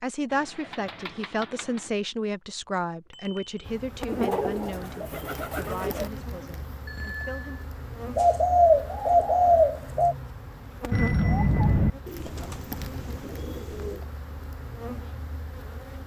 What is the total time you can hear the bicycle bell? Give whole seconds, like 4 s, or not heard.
2 s.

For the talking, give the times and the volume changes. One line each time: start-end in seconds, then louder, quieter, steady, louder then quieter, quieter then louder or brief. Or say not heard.
0.0-7.6 quieter.